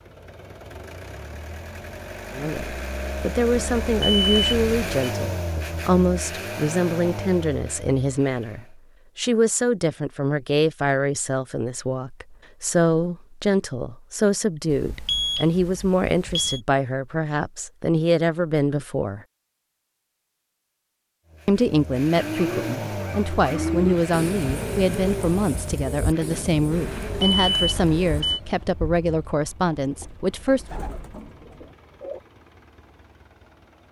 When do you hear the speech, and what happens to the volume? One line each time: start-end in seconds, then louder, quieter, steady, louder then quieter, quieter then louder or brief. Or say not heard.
2.4-19.2 steady
21.4-30.6 steady.